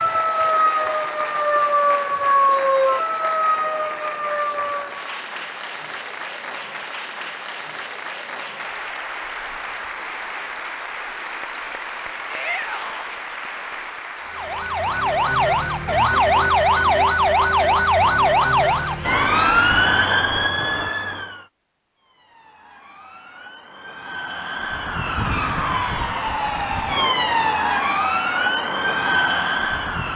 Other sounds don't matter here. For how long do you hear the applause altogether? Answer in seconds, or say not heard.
20 s.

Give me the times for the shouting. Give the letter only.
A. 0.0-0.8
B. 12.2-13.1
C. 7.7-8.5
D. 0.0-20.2
B.